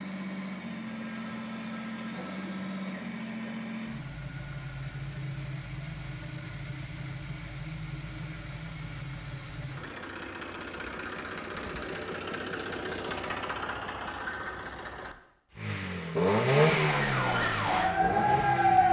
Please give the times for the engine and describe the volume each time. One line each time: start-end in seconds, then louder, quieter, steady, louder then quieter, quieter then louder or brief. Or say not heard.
0.0-18.8 louder.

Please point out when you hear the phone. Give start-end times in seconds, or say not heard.
0.8-2.9, 8.1-10.1, 13.3-14.7.